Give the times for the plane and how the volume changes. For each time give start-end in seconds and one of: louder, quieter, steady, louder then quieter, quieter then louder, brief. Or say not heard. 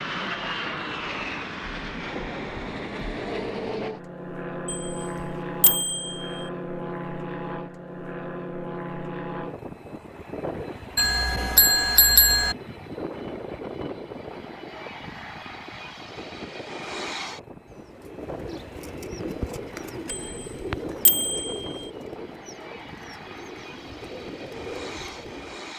0.0-25.7 quieter.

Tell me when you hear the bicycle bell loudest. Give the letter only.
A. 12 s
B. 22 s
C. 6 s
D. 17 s
A.